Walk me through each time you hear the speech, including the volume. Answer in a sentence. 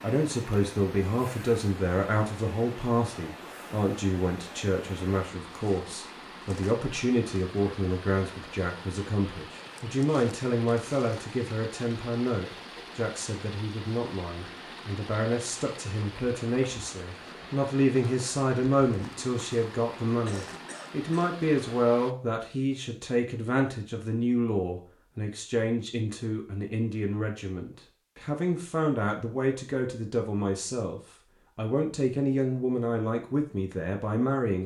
The speech can be heard from 0.0 to 34.6 s, at a steady volume.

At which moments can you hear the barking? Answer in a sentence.
You can't hear the barking here.